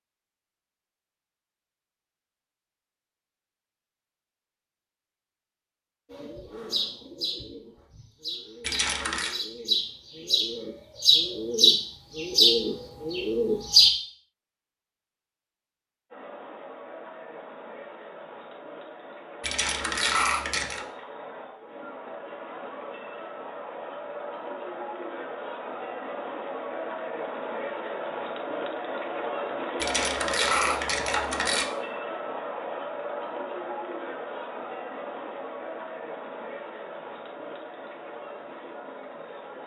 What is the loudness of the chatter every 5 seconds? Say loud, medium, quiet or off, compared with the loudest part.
off, off, off, medium, medium, loud, loud, medium.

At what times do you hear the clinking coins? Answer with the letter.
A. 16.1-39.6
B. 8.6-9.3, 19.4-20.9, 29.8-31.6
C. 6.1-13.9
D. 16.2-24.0
B.